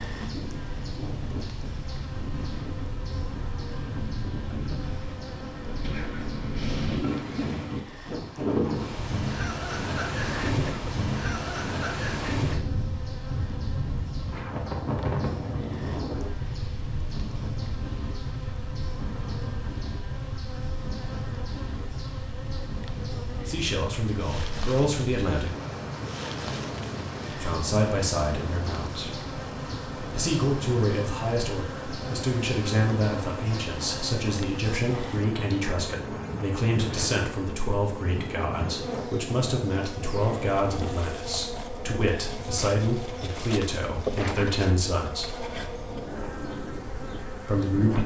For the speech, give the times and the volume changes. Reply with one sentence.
You can hear the speech briefly from 23.4 to 25.5 s; briefly from 27.4 to 29.1 s; from 30.1 to 45.3 s, at a steady volume; and briefly from 47.5 to 48.0 s.